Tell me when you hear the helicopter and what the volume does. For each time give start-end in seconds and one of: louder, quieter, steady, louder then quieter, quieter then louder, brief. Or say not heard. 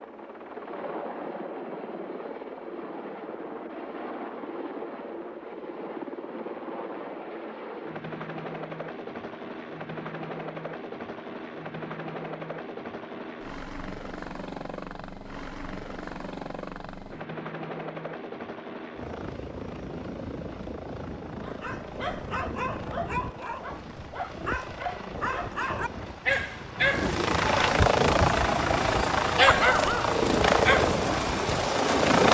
0.0-32.3 louder.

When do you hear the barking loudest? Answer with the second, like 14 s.
30 s.